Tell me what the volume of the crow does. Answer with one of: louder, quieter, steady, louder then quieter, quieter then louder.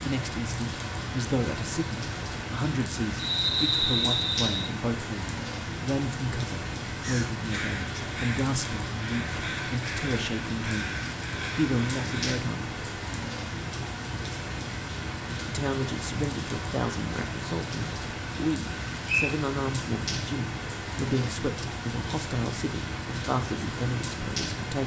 steady.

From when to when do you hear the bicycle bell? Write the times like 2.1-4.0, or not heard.
not heard.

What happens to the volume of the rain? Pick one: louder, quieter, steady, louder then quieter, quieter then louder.
steady.